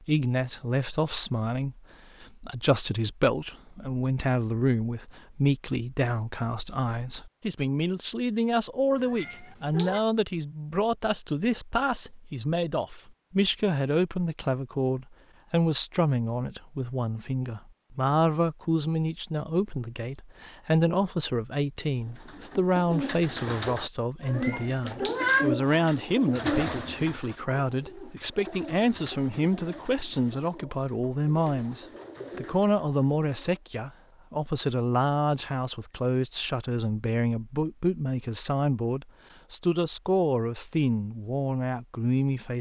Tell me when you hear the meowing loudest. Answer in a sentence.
The volume of the meowing peaks at 25 seconds.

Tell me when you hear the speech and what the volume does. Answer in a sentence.
You can hear the speech from 0.1 to 42.5 s, at a steady volume.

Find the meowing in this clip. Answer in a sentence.
You can hear the meowing from 8.9 to 10.1 s and from 24.2 to 25.5 s.